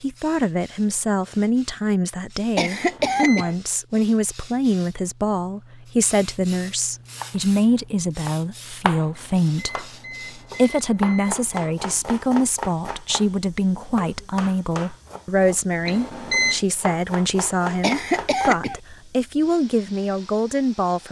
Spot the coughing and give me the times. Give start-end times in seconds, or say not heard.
2.5-3.5, 17.8-18.8.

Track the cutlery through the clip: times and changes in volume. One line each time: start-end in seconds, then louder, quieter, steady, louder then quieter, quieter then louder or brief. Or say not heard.
not heard.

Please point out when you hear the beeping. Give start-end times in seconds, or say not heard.
2.7-3.5, 9.1-11.4, 15.8-16.6.